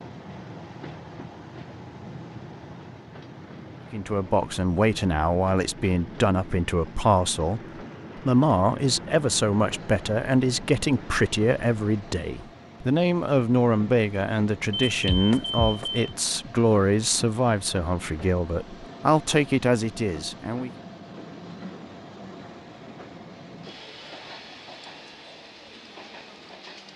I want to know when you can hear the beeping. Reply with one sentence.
The beeping can be heard from 14.7 to 16.1 s.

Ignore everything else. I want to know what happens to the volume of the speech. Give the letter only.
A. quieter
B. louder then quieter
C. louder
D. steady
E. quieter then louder
D.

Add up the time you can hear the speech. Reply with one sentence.
The speech can be heard for 17 seconds in total.